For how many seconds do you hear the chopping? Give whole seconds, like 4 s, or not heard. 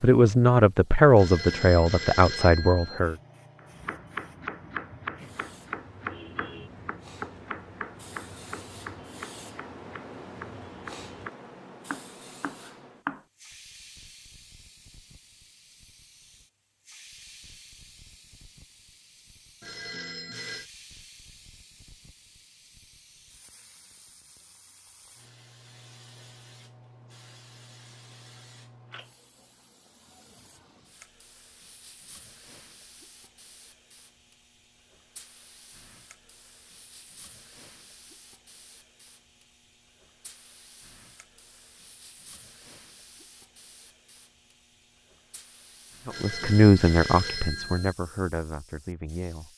10 s.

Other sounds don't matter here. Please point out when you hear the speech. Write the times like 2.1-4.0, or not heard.
0.0-3.1, 46.0-49.5.